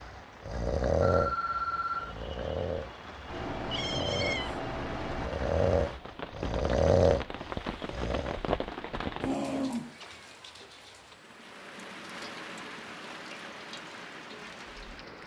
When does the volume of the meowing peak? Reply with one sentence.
The loudest moment of the meowing is at 4 seconds.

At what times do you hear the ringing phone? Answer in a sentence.
The ringing phone can be heard from 1.0 to 2.1 s.